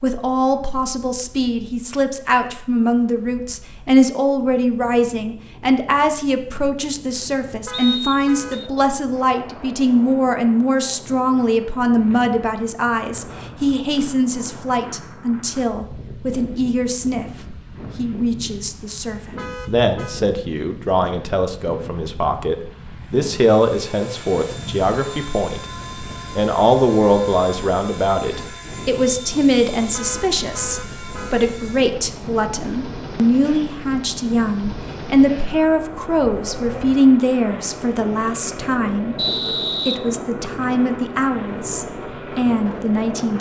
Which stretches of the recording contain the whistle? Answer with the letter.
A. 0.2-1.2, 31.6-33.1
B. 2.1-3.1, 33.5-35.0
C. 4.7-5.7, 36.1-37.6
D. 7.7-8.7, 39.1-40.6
D.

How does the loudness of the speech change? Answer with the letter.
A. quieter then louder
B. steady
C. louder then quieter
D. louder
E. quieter
B.